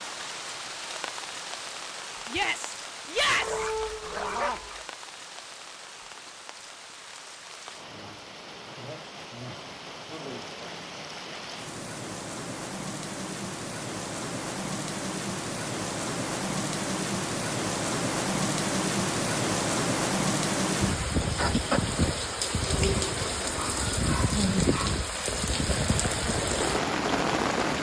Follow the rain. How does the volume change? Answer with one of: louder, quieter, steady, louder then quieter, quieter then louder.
louder.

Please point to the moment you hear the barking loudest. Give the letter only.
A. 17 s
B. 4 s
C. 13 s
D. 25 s
B.